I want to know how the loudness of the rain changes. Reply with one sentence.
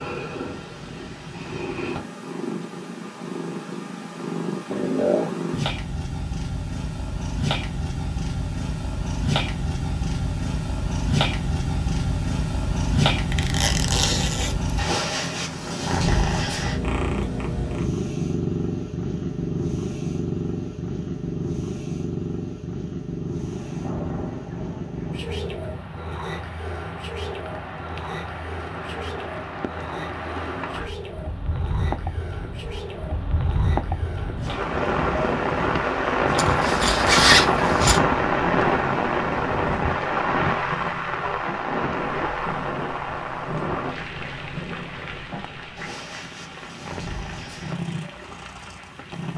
The volume of the rain goes up, then down.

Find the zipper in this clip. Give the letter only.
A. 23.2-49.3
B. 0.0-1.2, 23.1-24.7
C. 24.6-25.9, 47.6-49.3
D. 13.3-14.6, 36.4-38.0
D.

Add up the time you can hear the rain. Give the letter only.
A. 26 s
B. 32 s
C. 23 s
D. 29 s
A.